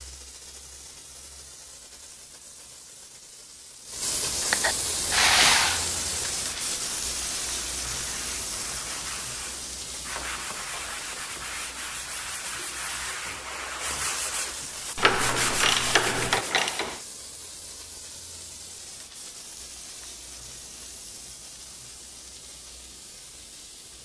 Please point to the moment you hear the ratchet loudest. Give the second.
5 s.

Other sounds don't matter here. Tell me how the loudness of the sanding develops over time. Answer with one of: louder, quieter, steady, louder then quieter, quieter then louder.
louder.